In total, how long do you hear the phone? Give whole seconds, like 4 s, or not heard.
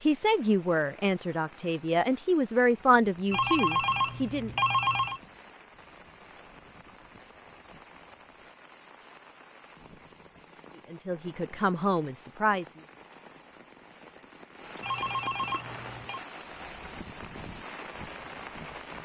3 s.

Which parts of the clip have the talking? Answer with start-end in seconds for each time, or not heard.
0.0-4.5, 10.9-12.7.